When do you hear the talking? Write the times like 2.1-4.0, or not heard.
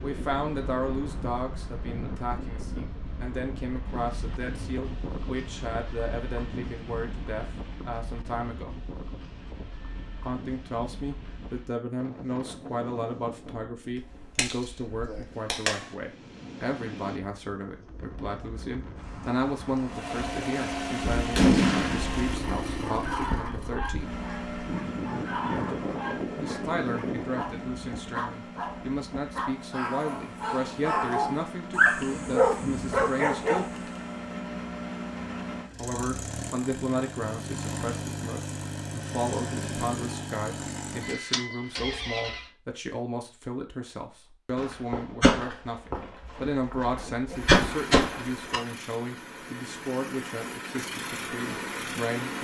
0.0-8.8, 10.2-24.1, 26.4-33.8, 35.8-52.3.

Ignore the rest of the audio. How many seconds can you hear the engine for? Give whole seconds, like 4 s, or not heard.
28 s.